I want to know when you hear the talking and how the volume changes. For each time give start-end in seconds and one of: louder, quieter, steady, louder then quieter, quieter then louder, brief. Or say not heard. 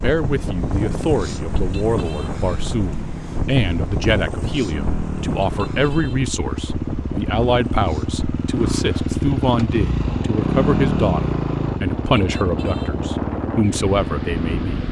0.0-14.8 steady.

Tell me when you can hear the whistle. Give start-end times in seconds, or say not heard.
not heard.